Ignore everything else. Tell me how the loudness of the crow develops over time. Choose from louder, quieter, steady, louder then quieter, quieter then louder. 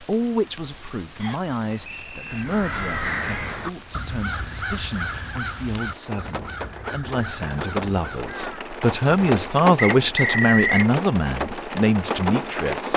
quieter.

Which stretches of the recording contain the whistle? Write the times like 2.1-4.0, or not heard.
1.2-2.5, 9.9-10.9.